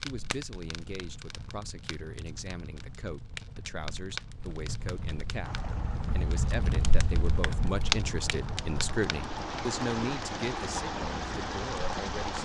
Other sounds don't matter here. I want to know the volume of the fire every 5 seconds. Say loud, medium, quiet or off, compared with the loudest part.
medium, loud, quiet.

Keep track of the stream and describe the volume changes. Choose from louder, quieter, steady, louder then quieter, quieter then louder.
louder.